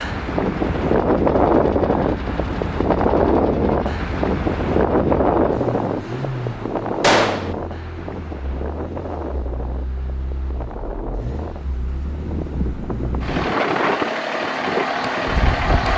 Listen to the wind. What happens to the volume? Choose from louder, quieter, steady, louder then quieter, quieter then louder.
quieter then louder.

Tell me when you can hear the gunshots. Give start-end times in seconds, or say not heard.
7.0-7.5.